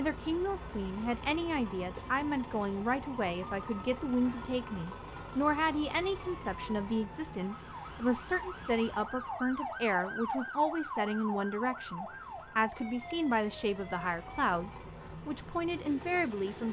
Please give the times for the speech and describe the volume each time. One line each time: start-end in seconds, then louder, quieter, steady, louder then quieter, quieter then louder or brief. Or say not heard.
0.0-16.6 steady.